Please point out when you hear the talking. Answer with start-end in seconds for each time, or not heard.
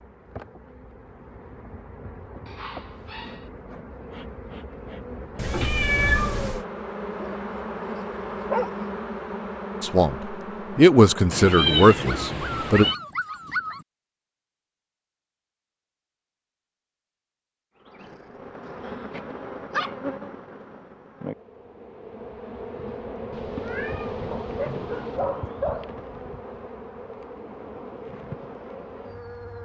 9.8-12.8.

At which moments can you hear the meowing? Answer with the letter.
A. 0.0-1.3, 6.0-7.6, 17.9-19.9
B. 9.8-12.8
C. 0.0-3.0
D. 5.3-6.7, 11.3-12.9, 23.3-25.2
D.